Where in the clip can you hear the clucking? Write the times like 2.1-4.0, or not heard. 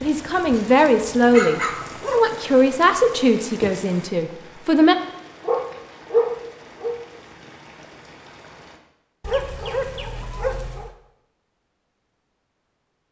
not heard.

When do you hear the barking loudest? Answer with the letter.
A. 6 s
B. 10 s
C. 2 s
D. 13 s
A.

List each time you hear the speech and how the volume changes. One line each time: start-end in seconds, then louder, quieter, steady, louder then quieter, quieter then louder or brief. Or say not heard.
0.0-5.0 quieter.